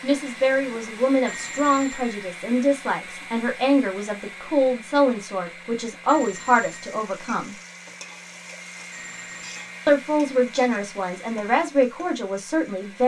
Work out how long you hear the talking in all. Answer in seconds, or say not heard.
11 s.